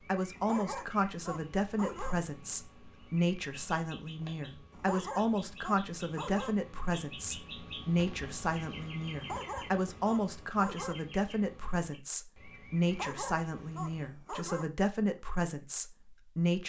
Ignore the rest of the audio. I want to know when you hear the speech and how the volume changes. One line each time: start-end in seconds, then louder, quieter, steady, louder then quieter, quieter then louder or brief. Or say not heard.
0.1-16.6 steady.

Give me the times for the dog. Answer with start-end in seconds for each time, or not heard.
0.3-2.1, 4.7-6.5, 9.2-10.9, 12.8-14.7.